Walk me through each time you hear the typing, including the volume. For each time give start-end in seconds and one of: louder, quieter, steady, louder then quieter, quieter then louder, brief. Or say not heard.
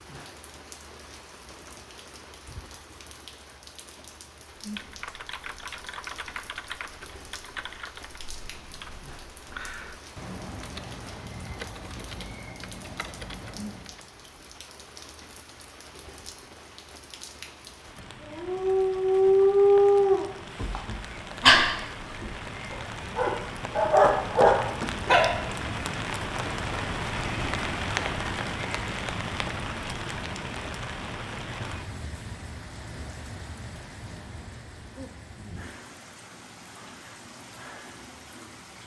4.5-14.1 steady.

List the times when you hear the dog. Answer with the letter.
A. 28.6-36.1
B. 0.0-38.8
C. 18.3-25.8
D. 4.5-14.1
C.